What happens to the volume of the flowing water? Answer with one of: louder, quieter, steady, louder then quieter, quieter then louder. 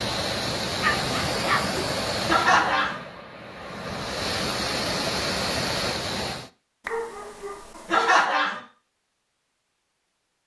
quieter then louder.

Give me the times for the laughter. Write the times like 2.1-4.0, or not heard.
2.2-3.0, 7.8-8.6.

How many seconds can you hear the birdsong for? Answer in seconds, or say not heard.
not heard.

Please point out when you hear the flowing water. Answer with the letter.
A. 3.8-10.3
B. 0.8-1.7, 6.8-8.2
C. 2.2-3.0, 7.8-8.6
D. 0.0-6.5
D.